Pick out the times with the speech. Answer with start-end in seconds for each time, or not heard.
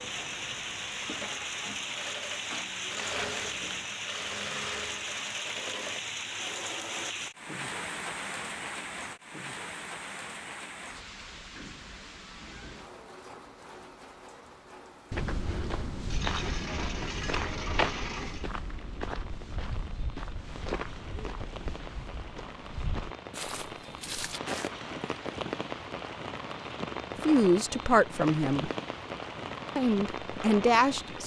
27.2-28.7, 29.8-31.2.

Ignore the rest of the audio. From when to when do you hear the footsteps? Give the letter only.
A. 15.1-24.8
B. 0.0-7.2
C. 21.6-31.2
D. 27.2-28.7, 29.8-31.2
A.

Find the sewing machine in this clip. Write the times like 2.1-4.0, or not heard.
0.0-7.2.